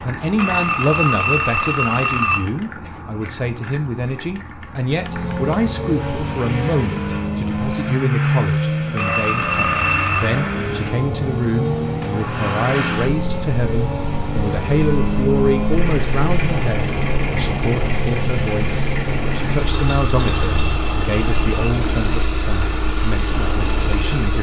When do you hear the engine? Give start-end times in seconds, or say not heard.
5.0-24.3.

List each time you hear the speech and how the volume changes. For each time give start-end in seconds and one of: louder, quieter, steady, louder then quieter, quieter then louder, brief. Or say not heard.
0.0-24.3 steady.